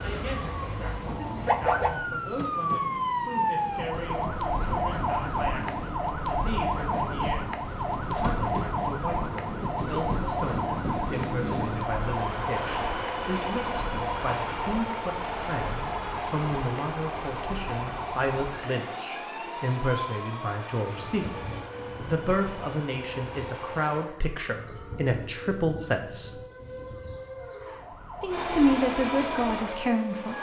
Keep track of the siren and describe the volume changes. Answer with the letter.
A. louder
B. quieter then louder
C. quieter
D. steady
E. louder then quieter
C.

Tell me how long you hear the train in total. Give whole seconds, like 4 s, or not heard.
26 s.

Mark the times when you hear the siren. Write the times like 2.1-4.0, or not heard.
0.0-30.3.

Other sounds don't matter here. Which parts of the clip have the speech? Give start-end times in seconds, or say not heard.
0.0-21.2, 22.1-26.4, 28.2-30.3.